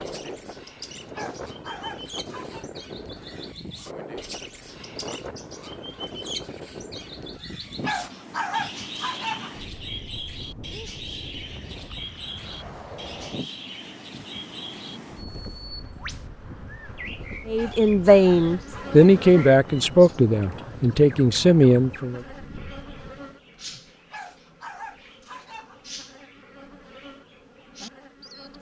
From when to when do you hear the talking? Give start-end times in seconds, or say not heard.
17.4-22.2.